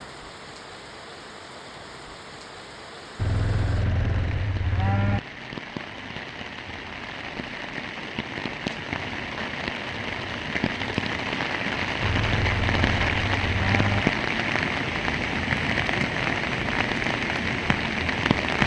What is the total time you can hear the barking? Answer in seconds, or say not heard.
not heard.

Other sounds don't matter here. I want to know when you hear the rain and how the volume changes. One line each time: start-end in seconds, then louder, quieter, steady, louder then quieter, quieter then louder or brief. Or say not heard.
0.0-18.6 louder.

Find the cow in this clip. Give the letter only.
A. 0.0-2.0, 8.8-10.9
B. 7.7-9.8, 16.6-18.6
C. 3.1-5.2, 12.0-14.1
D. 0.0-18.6
C.